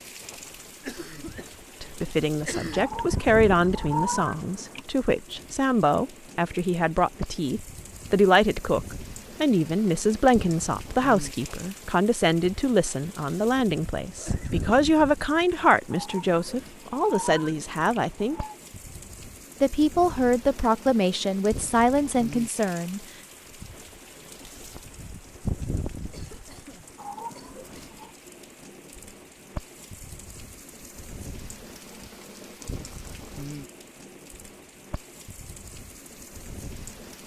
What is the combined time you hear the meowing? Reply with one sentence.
The meowing can be heard for 6 seconds in total.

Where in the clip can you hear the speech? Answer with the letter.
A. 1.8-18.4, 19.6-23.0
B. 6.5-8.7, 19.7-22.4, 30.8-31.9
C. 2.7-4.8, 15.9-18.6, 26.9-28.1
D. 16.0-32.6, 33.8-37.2
A.